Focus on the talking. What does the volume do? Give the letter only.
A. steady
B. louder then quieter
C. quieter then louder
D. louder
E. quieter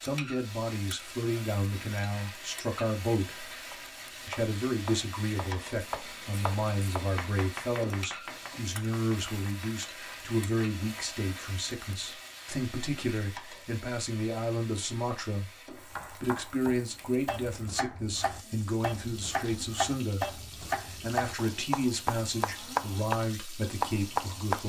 A.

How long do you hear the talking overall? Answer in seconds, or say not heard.
24 s.